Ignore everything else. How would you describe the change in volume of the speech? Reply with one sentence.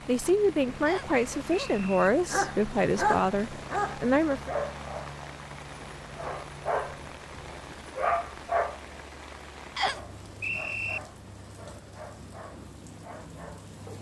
The loudness of the speech stays about the same.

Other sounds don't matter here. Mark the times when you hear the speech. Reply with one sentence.
You can hear the speech from 0.1 to 4.5 s.